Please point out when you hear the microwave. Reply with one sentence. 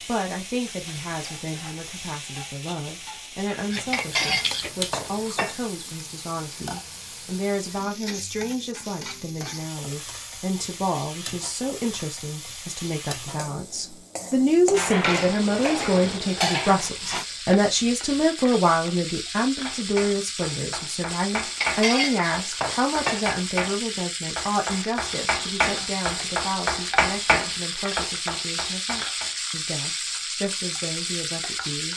The microwave can't be heard in this clip.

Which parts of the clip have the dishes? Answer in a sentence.
The dishes can be heard from 3.9 to 5.5 s, from 14.7 to 17.2 s and from 21.6 to 23.2 s.